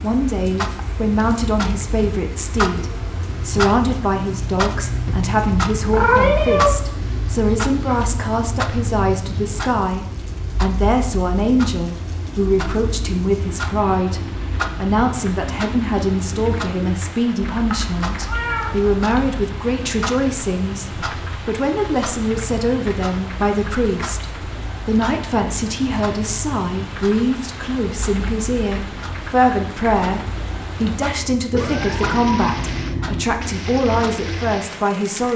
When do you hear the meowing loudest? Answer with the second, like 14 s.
6 s.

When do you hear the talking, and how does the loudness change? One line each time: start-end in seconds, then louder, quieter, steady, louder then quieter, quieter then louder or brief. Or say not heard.
0.0-35.3 steady.